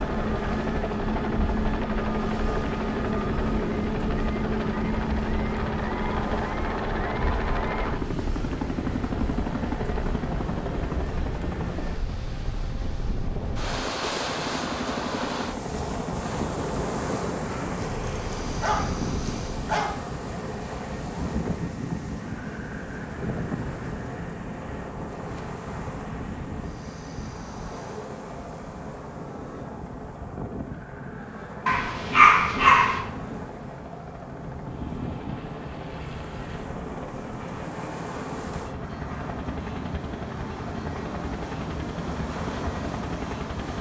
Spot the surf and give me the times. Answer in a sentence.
The surf can be heard from 0.0 to 43.7 s.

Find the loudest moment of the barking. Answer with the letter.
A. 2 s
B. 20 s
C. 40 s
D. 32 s
D.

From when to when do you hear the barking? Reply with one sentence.
You can hear the barking from 17.7 to 19.9 s and from 31.6 to 33.0 s.